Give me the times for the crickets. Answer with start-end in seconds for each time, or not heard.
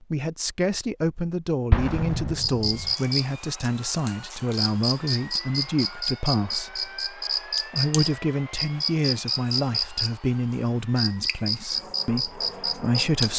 2.4-13.3.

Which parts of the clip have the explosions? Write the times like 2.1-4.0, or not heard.
1.7-3.0.